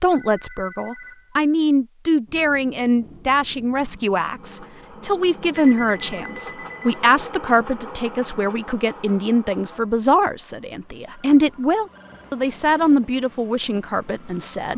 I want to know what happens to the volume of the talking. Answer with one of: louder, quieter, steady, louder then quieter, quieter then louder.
steady.